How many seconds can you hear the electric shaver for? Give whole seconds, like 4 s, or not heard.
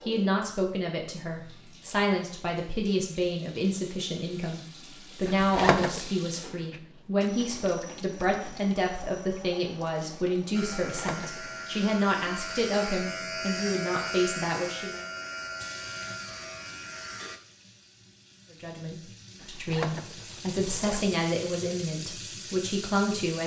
7 s.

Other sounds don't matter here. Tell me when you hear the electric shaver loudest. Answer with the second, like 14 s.
14 s.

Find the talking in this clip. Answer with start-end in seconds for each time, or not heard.
0.0-15.0, 18.5-23.4.